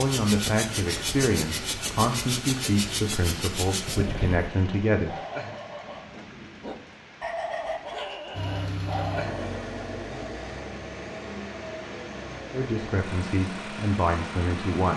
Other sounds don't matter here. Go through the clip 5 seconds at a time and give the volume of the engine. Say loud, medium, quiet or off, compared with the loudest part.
loud, loud, medium.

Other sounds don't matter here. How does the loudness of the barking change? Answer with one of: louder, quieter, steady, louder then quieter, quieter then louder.
quieter then louder.